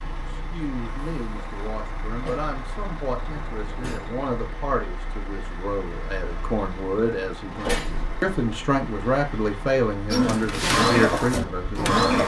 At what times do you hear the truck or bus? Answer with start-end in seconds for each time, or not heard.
0.0-11.9.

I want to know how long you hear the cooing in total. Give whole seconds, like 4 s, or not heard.
2 s.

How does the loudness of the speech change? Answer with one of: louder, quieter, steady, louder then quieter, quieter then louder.
louder.